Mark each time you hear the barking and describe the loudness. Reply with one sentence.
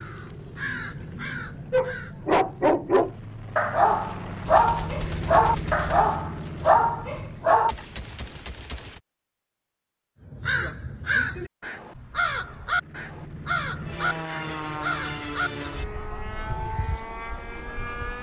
You can hear the barking from 1.7 to 7.8 s, at a steady volume.